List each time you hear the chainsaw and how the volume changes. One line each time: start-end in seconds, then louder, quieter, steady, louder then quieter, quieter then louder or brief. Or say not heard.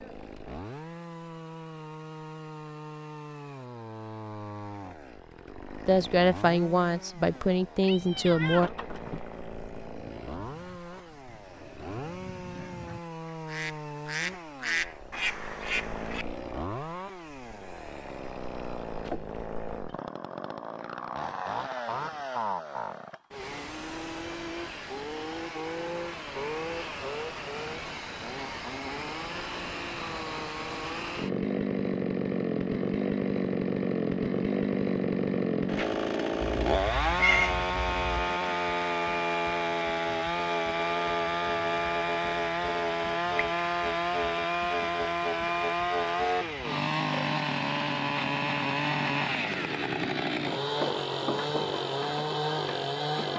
0.0-53.3 louder.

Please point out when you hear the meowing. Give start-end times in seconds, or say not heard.
7.3-9.2, 36.4-38.3.